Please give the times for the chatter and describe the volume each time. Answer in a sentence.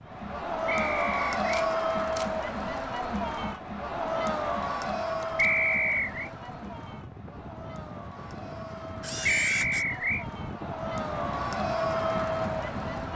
The chatter can be heard from 0.0 to 13.1 s, getting quieter then louder.